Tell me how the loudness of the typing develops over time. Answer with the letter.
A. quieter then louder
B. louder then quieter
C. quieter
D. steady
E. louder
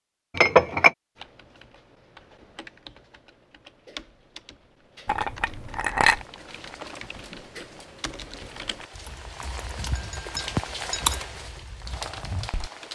E.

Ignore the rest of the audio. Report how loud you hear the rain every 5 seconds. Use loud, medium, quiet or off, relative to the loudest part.
off, medium, loud.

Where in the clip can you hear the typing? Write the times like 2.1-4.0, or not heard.
1.1-12.7.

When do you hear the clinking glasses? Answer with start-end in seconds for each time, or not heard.
0.3-0.9, 5.0-6.2, 9.9-11.2.